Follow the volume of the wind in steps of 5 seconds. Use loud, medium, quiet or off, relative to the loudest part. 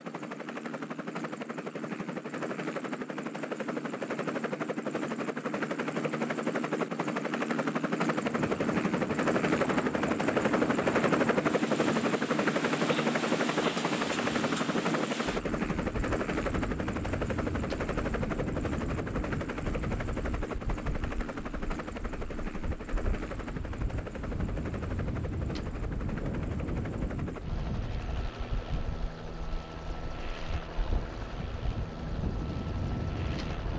off, loud, loud, loud, medium, loud, loud.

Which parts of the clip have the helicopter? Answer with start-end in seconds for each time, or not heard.
0.0-33.7.